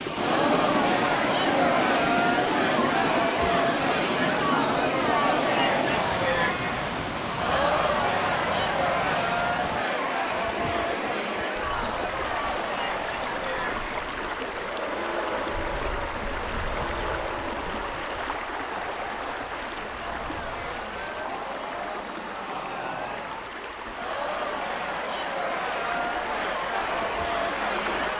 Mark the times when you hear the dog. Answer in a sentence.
You can't hear the dog here.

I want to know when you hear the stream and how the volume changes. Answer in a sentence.
The stream can be heard from 0.0 to 28.1 s, getting quieter.